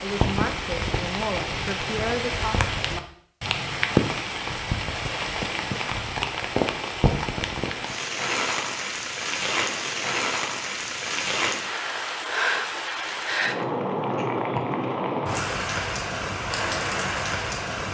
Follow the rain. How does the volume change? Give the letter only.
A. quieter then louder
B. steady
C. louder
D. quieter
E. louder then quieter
B.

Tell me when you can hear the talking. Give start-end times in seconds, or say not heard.
0.0-2.6.